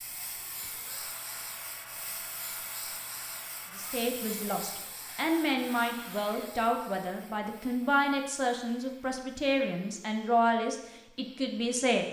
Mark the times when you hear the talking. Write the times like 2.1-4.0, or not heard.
3.8-12.0.